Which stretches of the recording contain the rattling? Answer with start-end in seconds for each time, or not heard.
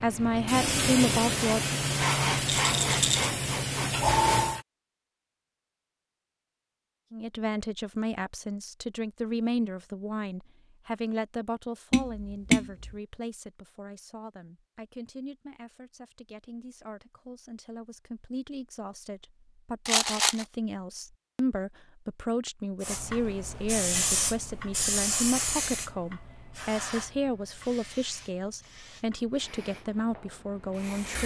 2.5-3.3, 19.9-20.4.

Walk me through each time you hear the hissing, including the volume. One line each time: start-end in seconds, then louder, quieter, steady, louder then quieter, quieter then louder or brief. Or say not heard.
0.0-4.6 steady
22.8-31.2 quieter.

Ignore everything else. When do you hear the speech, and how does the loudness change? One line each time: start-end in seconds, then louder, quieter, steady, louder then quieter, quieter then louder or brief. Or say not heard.
0.0-1.7 brief
7.1-31.2 quieter then louder.